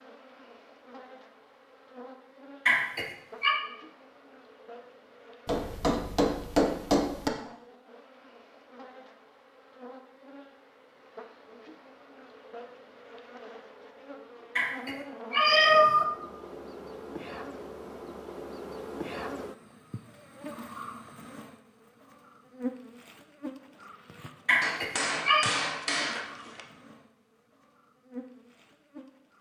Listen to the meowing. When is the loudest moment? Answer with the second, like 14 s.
16 s.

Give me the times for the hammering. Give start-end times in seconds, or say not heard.
5.5-7.3, 24.6-26.6.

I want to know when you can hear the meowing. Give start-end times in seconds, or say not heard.
2.6-3.5, 14.6-16.1, 24.4-25.4.